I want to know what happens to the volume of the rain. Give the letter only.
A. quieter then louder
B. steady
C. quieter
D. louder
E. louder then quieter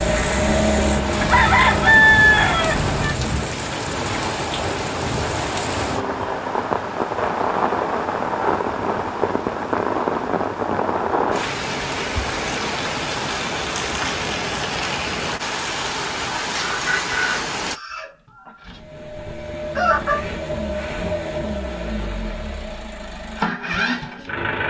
B.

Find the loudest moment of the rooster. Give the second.
2 s.